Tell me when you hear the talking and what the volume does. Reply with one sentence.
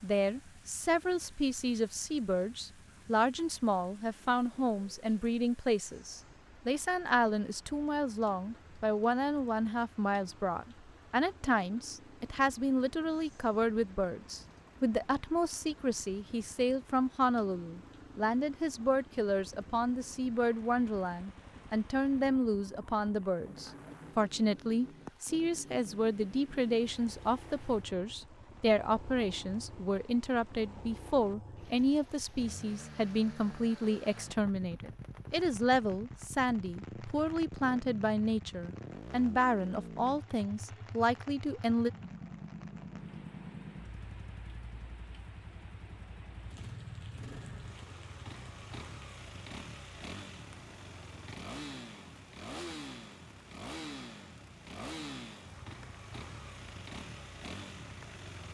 The talking can be heard from 0.0 to 41.9 s, at a steady volume.